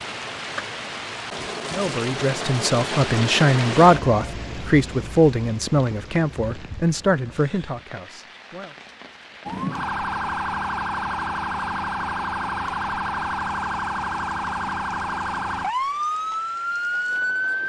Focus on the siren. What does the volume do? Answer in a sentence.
The volume of the siren stays about the same.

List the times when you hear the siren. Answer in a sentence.
You can hear the siren from 9.4 to 17.6 s.